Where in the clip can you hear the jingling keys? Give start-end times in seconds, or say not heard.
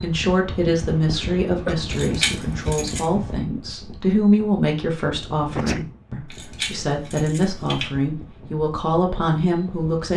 1.9-3.0, 6.2-7.9.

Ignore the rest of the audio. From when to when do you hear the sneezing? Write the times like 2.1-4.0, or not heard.
1.1-1.8, 5.3-5.8.